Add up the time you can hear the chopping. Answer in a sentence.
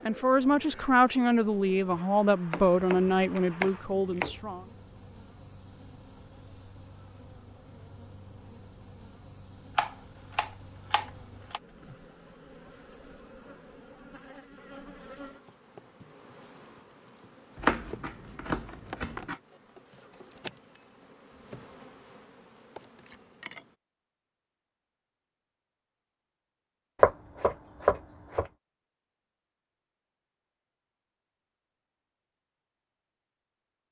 You can hear the chopping for 7 seconds altogether.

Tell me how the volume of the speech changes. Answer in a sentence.
The loudness of the speech goes down.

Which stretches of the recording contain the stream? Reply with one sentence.
The stream can't be heard in this clip.